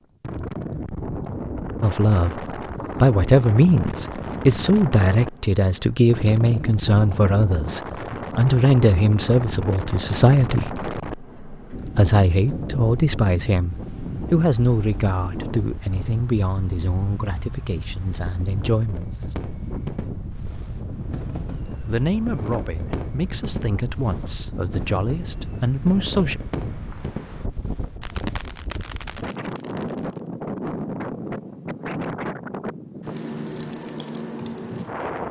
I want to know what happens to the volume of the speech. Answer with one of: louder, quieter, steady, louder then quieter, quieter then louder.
quieter.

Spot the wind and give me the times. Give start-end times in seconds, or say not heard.
0.2-35.2.